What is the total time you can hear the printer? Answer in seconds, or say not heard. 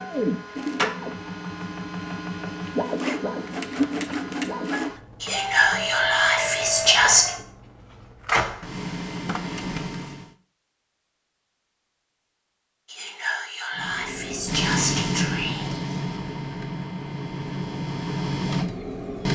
16 s.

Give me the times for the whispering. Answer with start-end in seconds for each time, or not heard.
5.2-7.3, 12.8-15.7.